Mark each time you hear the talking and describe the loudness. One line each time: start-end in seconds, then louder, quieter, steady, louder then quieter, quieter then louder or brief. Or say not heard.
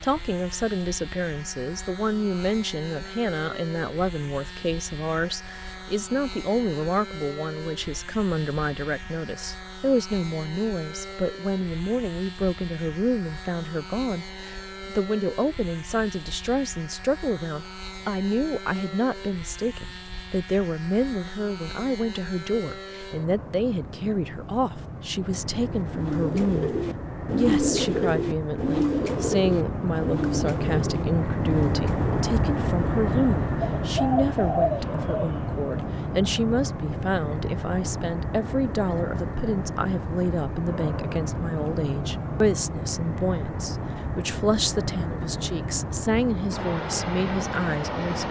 0.0-48.2 steady.